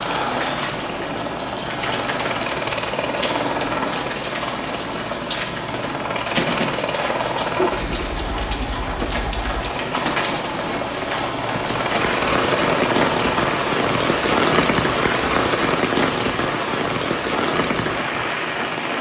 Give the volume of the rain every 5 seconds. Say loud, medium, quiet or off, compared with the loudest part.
medium, medium, loud, loud.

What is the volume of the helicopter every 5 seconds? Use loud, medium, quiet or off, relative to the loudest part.
loud, loud, loud, off.